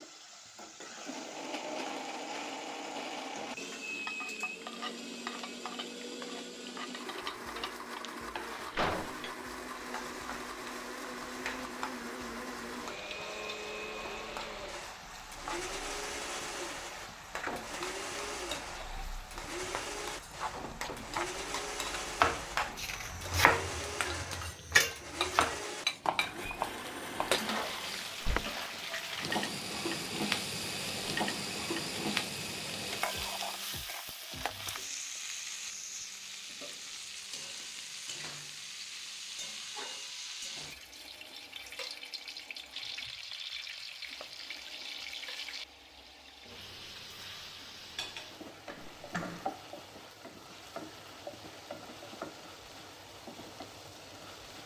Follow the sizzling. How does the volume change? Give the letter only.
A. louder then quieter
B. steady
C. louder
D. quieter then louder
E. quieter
A.